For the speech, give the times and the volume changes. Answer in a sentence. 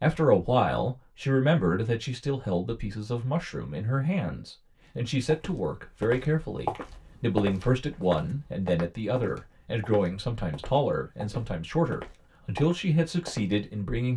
You can hear the speech from 0.0 to 14.1 s, at a steady volume.